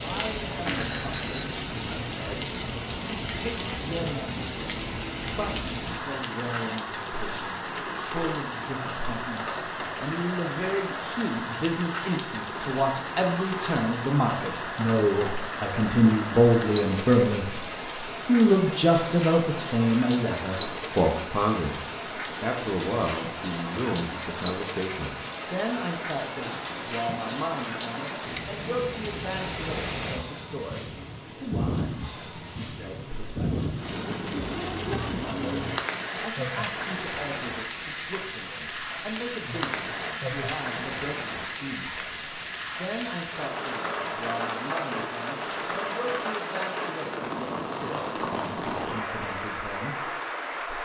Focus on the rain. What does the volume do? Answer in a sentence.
The loudness of the rain stays about the same.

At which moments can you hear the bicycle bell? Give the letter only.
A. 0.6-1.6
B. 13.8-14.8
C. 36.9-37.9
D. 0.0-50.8
A.